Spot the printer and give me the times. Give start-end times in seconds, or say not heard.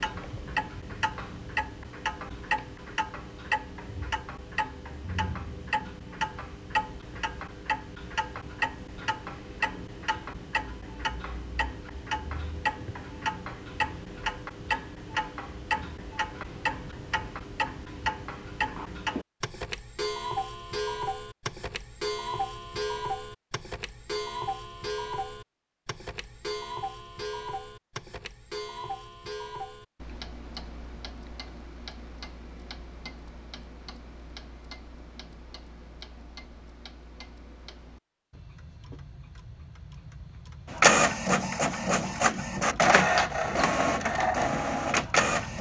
40.7-45.5.